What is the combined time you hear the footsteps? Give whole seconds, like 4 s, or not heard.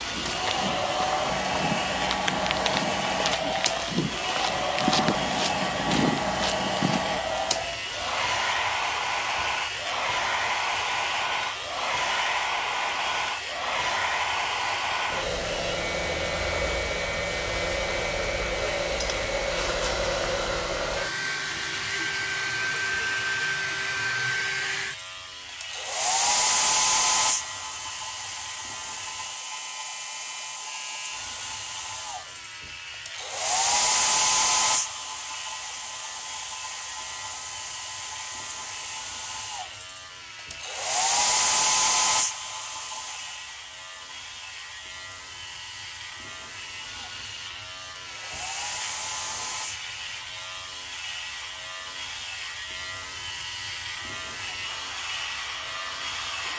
7 s.